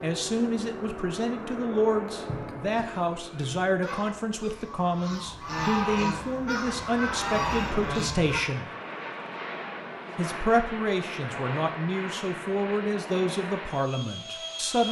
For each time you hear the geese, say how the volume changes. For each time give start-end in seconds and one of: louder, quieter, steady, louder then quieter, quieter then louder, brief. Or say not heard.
2.2-8.4 louder.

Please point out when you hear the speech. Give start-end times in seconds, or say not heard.
0.0-8.7, 10.2-14.8.